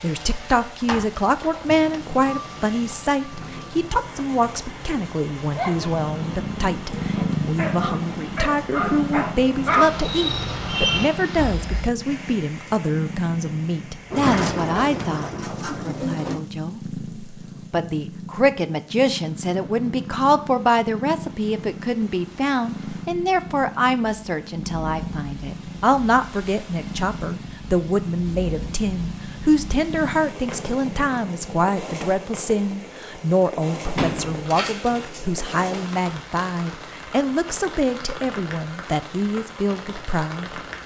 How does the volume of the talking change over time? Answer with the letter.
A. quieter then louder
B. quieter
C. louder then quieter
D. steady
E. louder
D.